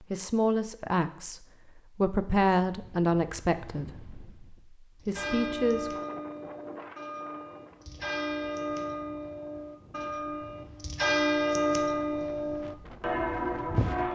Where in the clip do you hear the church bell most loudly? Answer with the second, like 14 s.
11 s.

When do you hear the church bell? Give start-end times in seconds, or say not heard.
5.0-14.1.